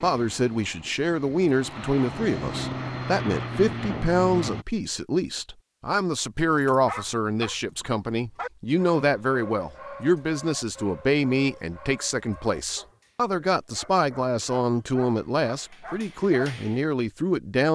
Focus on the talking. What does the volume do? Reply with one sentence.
The loudness of the talking stays about the same.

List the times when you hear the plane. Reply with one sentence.
You can hear the plane from 0.0 to 4.7 s.